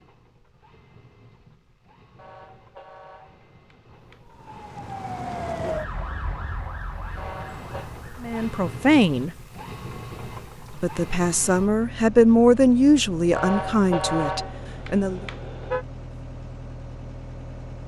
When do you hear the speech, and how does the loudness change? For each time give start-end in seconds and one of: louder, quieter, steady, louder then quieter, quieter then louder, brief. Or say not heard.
8.2-9.3 brief
10.7-15.2 louder then quieter.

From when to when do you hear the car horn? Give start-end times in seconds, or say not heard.
2.1-4.3, 7.2-7.9, 13.3-15.8.